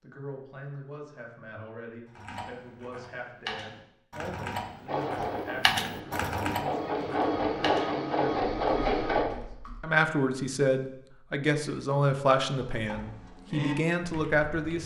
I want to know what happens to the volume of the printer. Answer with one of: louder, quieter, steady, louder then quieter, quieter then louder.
louder.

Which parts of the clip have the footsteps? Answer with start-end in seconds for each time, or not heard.
not heard.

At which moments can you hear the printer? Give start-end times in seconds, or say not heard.
4.8-9.2.